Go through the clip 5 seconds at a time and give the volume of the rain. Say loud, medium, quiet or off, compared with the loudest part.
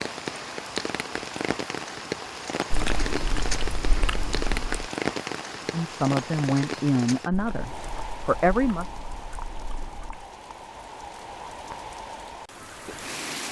loud, loud, medium.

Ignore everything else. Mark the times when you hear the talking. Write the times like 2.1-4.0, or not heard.
5.7-8.9.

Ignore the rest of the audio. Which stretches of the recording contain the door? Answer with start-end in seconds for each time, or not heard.
not heard.